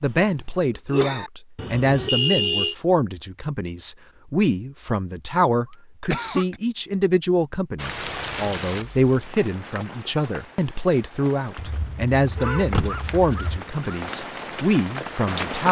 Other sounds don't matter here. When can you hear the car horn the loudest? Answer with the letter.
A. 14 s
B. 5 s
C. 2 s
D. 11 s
C.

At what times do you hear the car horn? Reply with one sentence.
You can hear the car horn from 1.6 to 2.8 s and from 11.6 to 13.6 s.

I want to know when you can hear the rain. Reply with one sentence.
The rain can be heard from 7.8 to 15.6 s.